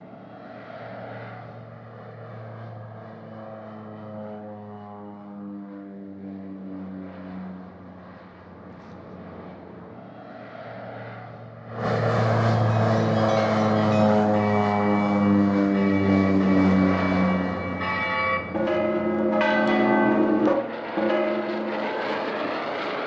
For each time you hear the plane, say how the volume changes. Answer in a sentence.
The plane can be heard from 0.0 to 23.0 s, getting louder then quieter.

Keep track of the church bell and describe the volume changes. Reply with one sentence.
The loudness of the church bell goes up.